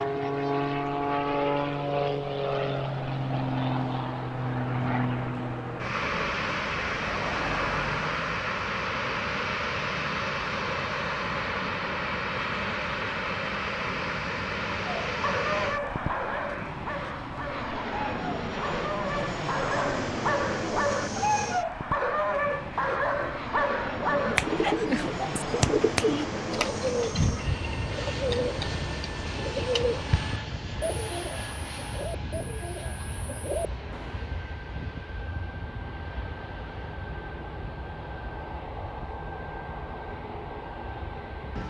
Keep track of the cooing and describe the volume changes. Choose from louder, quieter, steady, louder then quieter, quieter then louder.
quieter.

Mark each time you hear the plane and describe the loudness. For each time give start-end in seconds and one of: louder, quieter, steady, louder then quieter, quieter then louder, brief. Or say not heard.
0.0-41.6 quieter.